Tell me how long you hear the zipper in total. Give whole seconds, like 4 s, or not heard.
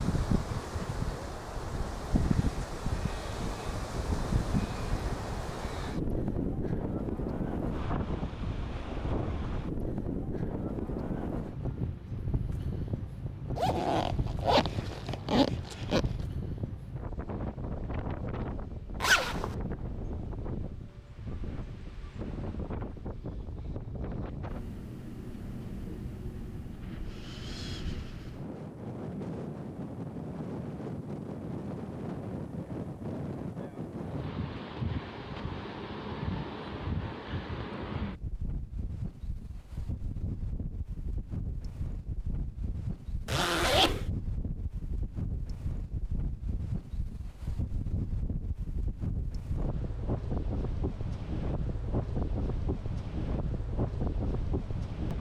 4 s.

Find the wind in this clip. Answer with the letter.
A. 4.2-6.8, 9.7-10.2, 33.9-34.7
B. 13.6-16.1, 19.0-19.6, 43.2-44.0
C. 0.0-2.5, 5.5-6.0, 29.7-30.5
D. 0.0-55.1
D.